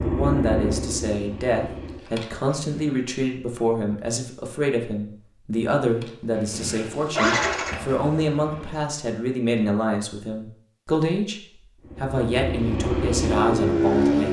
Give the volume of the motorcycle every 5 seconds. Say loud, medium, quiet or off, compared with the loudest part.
medium, medium, loud.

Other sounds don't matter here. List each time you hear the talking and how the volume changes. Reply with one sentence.
The talking can be heard from 0.0 to 11.4 s, at a steady volume; and briefly from 12.0 to 14.2 s.